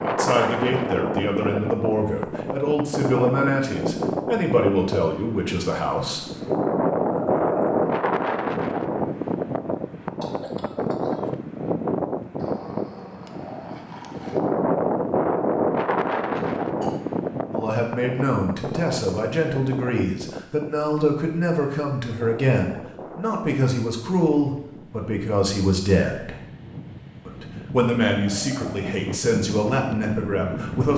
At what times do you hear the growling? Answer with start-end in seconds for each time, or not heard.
7.1-7.8, 12.3-14.4, 28.2-29.0.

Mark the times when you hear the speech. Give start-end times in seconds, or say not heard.
0.0-6.3, 17.4-26.4, 27.2-30.9.